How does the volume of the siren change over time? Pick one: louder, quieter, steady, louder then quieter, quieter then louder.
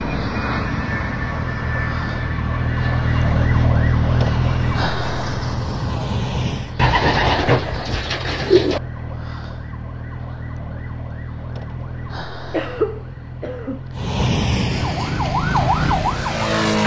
quieter then louder.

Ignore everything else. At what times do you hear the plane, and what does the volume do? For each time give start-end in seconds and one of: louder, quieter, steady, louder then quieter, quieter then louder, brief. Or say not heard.
0.0-6.8 quieter then louder
13.9-16.8 brief.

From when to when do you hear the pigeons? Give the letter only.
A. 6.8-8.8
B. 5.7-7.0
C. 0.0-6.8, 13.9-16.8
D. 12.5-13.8
A.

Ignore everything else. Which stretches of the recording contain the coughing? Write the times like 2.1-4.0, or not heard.
12.5-13.8.